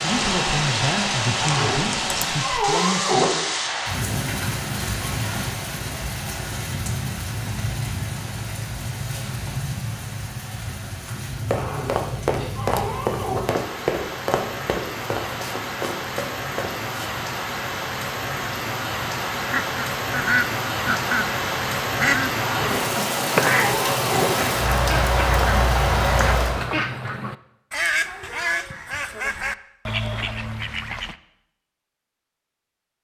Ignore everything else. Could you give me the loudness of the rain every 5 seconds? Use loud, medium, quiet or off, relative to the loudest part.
loud, medium, medium, medium, loud, loud, off.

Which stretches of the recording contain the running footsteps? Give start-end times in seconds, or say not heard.
11.3-16.9.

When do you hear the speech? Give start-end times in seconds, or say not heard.
0.0-3.5.